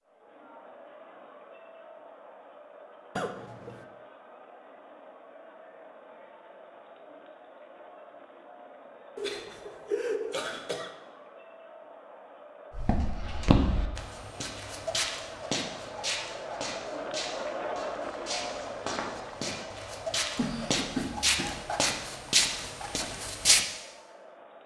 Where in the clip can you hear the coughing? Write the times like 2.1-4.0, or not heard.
3.1-3.9, 9.2-10.9, 20.4-21.7.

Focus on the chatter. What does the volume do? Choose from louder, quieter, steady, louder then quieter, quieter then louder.
louder then quieter.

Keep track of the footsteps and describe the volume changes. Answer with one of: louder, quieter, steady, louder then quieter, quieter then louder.
quieter then louder.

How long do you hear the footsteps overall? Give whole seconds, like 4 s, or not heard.
11 s.